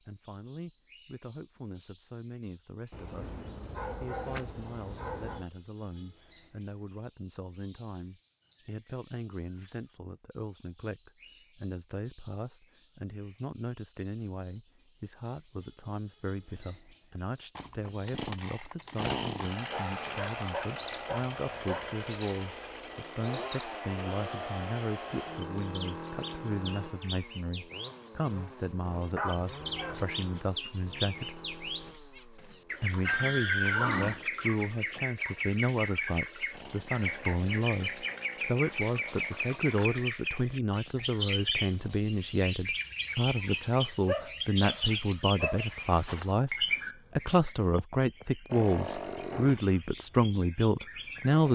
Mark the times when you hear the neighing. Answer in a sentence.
The neighing can be heard from 33.0 to 34.2 s.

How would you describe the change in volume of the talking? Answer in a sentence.
The volume of the talking goes up.